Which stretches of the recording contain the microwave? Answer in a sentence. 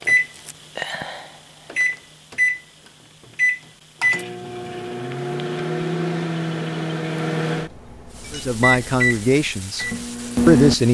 The microwave can be heard from 0.0 to 10.8 s.